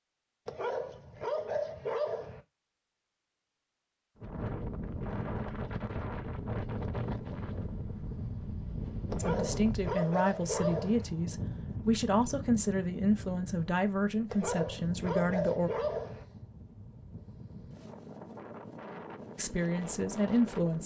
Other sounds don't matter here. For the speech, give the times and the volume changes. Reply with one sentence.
The speech can be heard from 9.2 to 15.7 s, at a steady volume; and briefly from 19.4 to 20.8 s.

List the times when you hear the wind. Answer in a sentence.
The wind can be heard from 4.2 to 20.8 s.